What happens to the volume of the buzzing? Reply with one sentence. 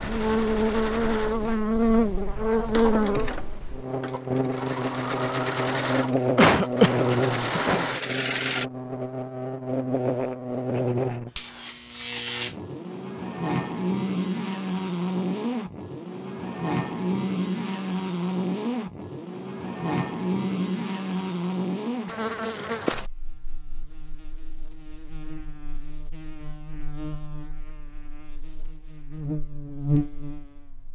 The loudness of the buzzing goes down.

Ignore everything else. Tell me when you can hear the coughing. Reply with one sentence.
You can hear the coughing from 6.3 to 7.8 s.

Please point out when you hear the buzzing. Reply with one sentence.
You can hear the buzzing from 0.0 to 30.9 s.